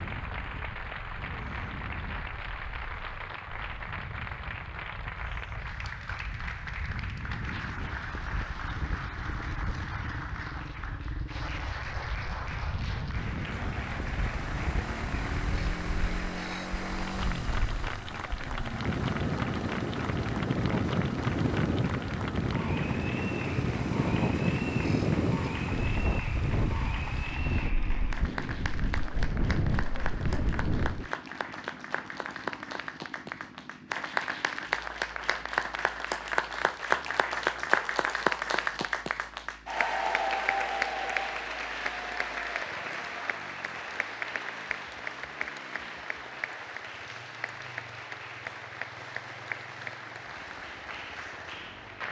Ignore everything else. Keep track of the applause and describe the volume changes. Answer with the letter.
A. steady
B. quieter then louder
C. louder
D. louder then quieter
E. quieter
D.